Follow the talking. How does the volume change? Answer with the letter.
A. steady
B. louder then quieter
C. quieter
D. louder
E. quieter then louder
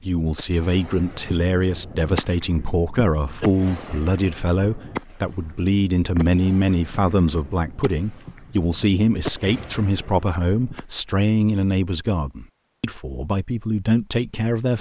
A.